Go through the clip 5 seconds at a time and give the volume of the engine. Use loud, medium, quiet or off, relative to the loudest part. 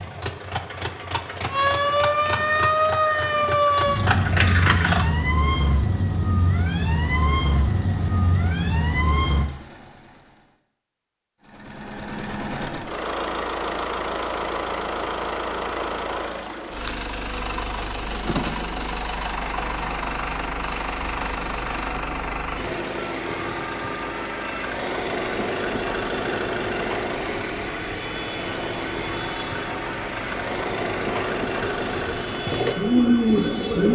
loud, quiet, loud, loud, loud, loud, loud.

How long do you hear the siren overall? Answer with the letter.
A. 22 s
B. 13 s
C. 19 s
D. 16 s
A.